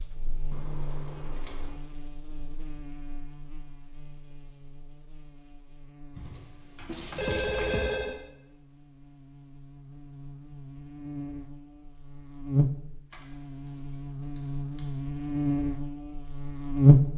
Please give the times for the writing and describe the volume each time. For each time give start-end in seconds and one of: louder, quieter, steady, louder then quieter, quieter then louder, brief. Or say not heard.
not heard.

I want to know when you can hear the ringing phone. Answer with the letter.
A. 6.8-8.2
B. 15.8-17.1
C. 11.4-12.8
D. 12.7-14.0
A.